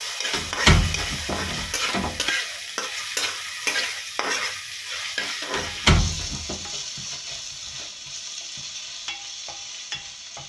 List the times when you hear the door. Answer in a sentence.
The door can be heard from 0.3 to 2.3 s and from 5.5 to 6.5 s.